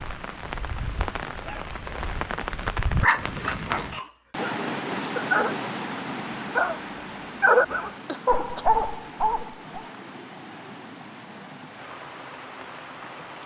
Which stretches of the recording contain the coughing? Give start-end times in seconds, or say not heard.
3.4-4.3, 8.1-8.7.